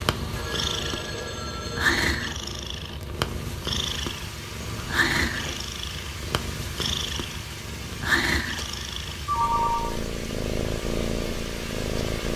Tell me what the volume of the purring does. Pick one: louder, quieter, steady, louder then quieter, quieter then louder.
steady.